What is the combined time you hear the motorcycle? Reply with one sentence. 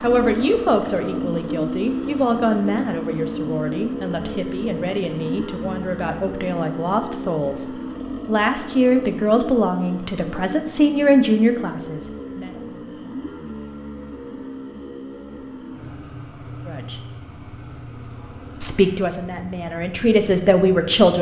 You can hear the motorcycle for 21 seconds altogether.